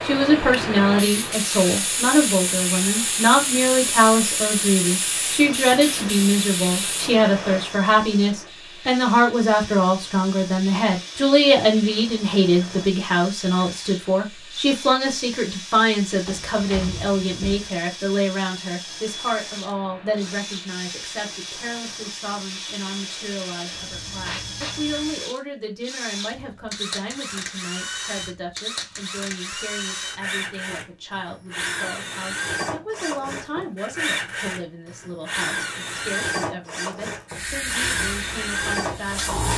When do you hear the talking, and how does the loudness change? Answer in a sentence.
You can hear the talking from 0.0 to 39.4 s, getting quieter.